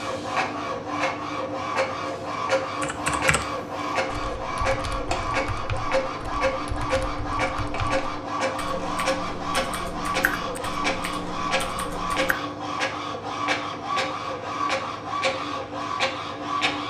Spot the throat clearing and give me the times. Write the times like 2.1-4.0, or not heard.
not heard.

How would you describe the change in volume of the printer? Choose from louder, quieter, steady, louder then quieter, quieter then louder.
steady.